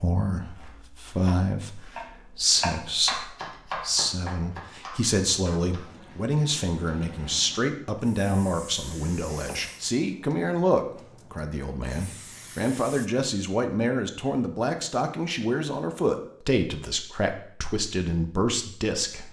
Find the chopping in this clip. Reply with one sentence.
You can hear the chopping from 0.3 to 5.8 s.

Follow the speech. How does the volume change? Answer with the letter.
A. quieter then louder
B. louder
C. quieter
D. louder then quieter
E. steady
E.